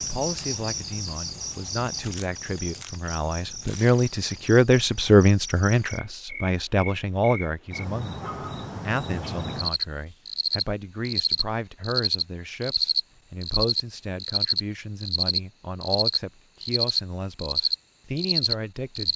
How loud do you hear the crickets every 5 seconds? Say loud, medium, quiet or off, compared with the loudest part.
medium, medium, loud, loud.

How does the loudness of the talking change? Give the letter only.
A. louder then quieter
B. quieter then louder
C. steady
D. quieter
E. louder
A.